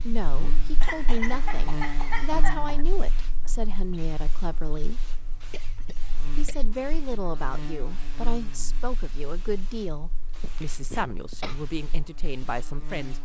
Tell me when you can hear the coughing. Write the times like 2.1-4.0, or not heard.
0.8-2.9, 5.5-6.7, 10.4-11.6.